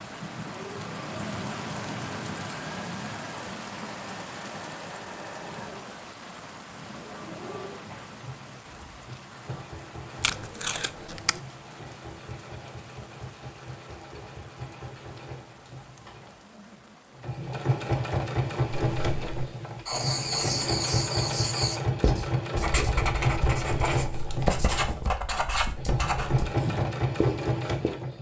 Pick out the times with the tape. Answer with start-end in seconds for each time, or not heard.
10.2-11.4.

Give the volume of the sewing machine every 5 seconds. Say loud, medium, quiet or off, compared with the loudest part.
quiet, quiet, quiet, loud, loud, loud.